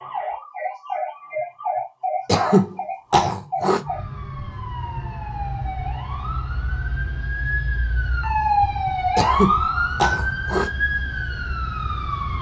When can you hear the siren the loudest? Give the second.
9 s.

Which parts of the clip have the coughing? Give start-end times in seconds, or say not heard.
2.2-3.8, 9.2-10.7.